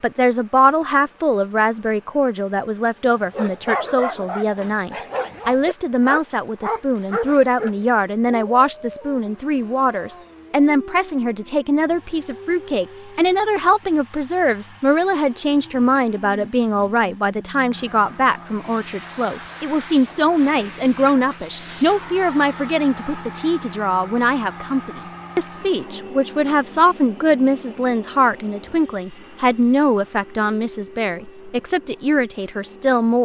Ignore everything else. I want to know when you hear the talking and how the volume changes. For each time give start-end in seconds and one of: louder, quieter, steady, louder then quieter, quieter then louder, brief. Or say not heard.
0.0-33.2 steady.